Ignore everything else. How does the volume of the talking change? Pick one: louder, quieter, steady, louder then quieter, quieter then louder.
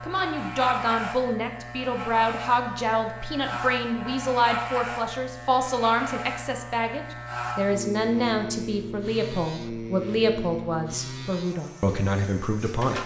steady.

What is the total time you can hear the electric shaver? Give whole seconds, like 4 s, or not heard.
13 s.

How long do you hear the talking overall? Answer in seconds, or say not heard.
13 s.